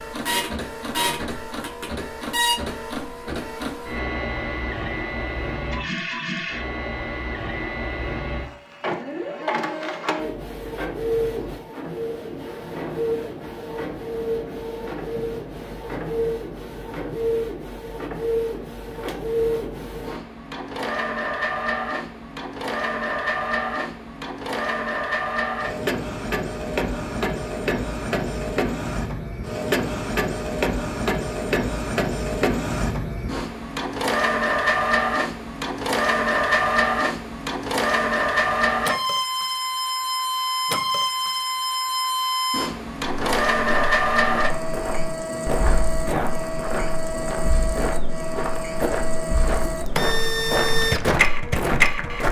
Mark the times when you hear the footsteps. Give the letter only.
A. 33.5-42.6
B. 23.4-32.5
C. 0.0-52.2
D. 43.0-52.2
D.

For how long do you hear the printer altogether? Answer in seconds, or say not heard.
52 s.